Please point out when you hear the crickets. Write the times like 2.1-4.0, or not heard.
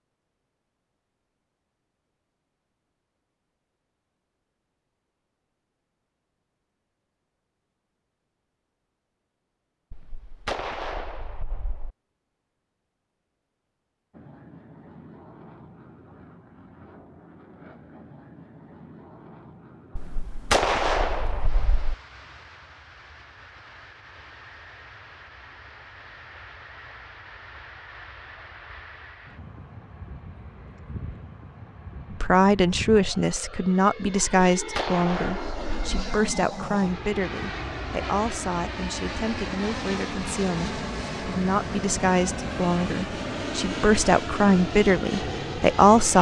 not heard.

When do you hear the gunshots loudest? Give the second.
21 s.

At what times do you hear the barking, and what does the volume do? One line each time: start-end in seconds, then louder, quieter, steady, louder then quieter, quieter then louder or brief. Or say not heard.
not heard.